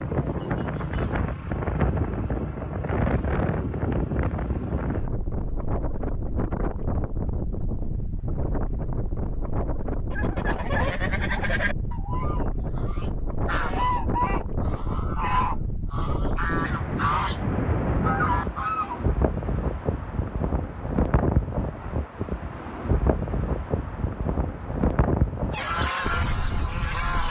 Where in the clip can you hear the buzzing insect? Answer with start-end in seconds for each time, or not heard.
not heard.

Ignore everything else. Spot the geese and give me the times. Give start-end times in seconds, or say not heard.
10.1-19.0, 25.5-27.2.